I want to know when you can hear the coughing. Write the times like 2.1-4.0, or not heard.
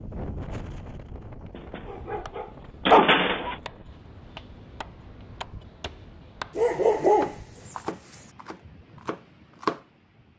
not heard.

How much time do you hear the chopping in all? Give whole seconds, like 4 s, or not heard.
8 s.